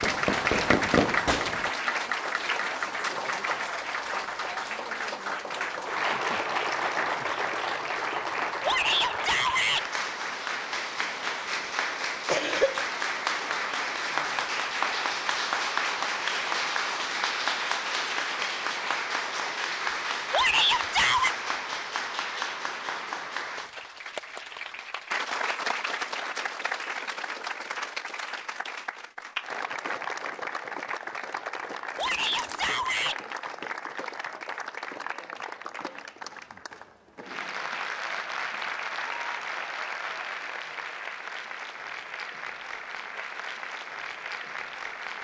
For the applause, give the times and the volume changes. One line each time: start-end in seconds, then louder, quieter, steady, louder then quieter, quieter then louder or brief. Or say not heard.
0.0-45.2 quieter.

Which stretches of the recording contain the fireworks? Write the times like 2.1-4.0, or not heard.
0.0-1.7.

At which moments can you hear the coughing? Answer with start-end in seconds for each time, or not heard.
12.2-12.9, 32.0-32.6.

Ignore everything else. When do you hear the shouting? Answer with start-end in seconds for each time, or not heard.
8.6-9.8, 20.3-21.4, 31.9-33.2.